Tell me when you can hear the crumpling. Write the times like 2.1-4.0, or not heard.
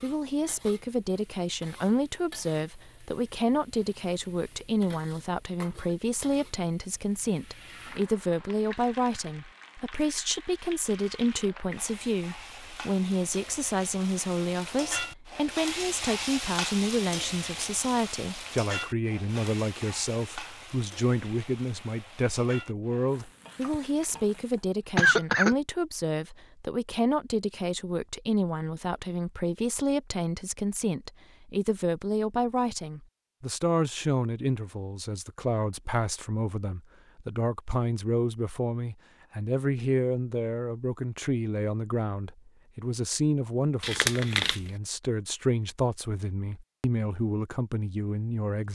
43.8-44.7.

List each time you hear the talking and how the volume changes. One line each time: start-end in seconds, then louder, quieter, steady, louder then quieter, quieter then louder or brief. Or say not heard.
0.0-48.7 steady.